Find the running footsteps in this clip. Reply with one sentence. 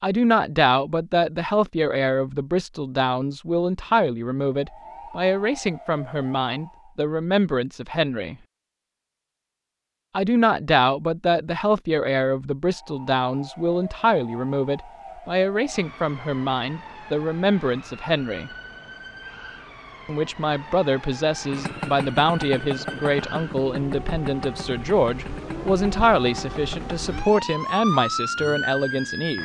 The running footsteps can't be heard in this clip.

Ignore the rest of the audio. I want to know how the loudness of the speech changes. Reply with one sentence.
The volume of the speech stays about the same.